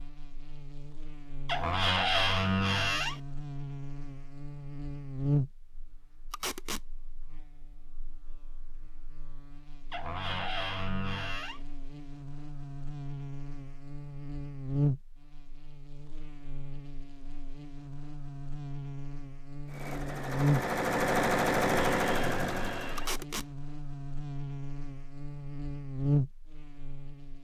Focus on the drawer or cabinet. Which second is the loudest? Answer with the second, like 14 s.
2 s.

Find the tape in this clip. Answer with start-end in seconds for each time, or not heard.
6.3-6.8, 22.9-23.5.